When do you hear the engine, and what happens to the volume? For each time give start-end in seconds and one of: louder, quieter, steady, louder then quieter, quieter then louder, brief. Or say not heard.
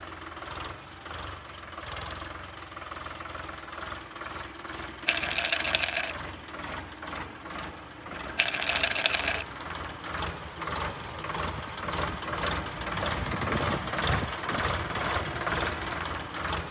0.0-16.6 louder.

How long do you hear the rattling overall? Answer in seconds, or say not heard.
2 s.